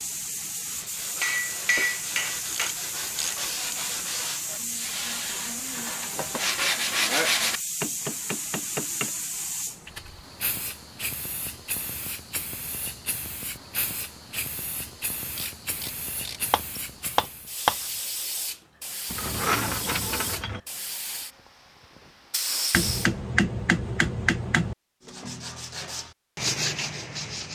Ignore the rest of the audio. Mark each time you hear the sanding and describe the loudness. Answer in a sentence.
You can hear the sanding from 0.7 to 7.6 s, getting louder; and briefly from 25.0 to 27.5 s.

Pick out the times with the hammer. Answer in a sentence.
The hammer can be heard from 1.2 to 2.7 s, from 7.8 to 9.2 s, from 16.5 to 17.8 s and from 22.7 to 24.8 s.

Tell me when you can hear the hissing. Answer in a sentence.
You can hear the hissing from 0.0 to 23.1 s.